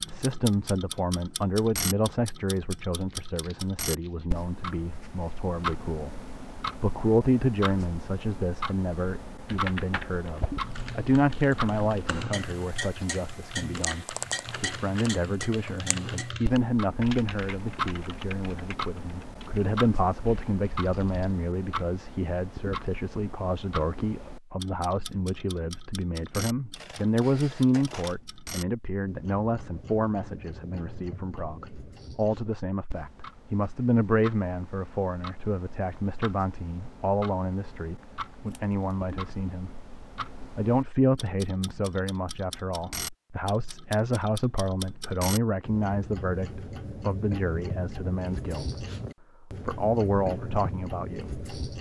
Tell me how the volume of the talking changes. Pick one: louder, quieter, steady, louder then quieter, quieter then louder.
steady.